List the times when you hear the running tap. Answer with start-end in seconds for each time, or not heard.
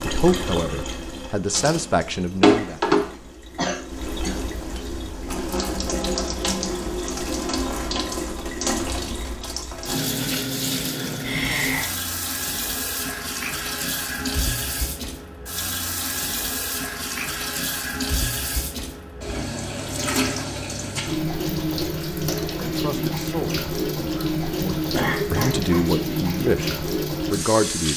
0.0-27.9.